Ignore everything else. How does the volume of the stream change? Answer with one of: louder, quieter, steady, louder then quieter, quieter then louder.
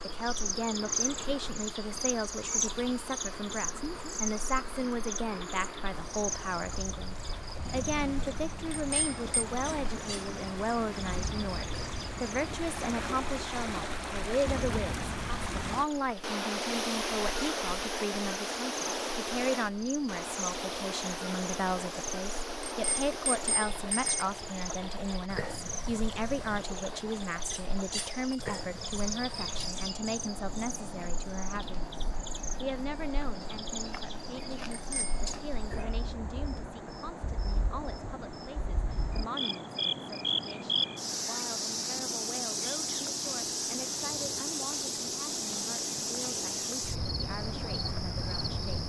louder then quieter.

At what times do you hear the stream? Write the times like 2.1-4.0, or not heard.
0.0-48.8.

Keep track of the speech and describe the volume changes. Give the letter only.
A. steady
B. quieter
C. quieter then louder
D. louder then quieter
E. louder
B.